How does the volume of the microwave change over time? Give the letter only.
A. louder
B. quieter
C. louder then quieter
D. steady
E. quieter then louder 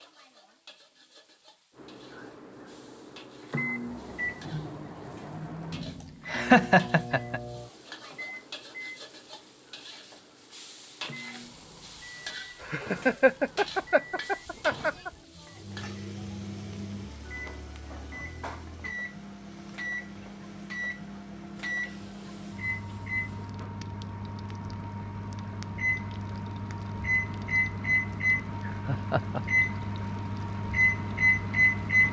E.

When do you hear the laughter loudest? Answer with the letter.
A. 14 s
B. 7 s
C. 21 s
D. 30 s
B.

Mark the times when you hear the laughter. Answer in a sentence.
The laughter can be heard from 6.0 to 7.4 s, from 12.6 to 15.1 s and from 28.6 to 29.9 s.